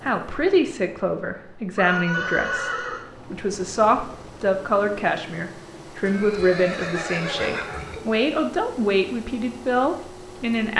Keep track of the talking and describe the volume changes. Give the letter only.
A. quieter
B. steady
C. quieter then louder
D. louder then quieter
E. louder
B.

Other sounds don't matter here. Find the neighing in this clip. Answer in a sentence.
You can hear the neighing from 1.8 to 3.0 s and from 6.0 to 8.0 s.